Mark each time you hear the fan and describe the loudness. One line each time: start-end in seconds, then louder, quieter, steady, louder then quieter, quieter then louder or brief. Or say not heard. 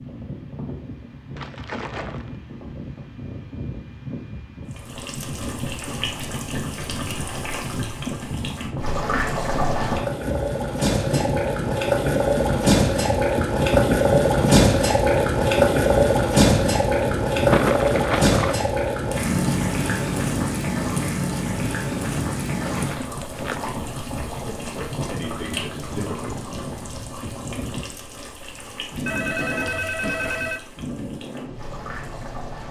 0.0-32.6 louder then quieter.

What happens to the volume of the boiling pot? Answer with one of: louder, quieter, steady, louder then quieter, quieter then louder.
louder then quieter.